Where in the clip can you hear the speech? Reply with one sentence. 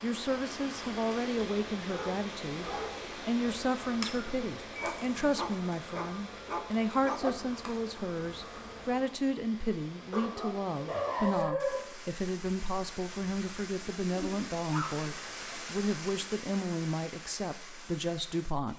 The speech can be heard from 0.0 to 18.7 s.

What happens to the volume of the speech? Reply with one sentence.
The loudness of the speech stays about the same.